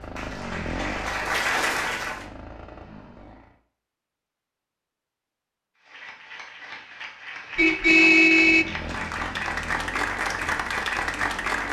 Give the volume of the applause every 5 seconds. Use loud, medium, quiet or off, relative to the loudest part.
loud, medium, loud.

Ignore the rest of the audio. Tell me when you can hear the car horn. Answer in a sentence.
The car horn can be heard from 7.5 to 8.7 s.